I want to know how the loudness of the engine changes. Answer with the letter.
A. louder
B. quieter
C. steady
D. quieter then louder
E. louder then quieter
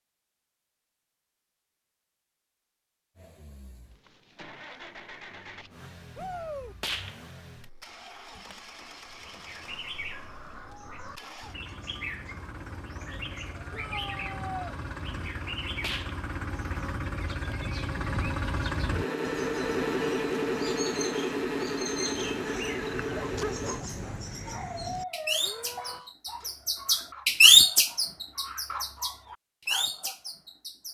A.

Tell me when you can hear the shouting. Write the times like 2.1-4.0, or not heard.
6.2-6.8, 13.7-14.8, 25.4-26.1.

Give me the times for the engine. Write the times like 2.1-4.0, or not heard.
3.1-23.9.